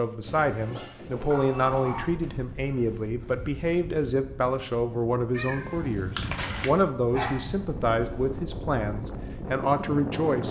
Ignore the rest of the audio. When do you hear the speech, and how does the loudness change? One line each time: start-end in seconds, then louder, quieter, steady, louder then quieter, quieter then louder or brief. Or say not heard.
0.0-10.4 steady.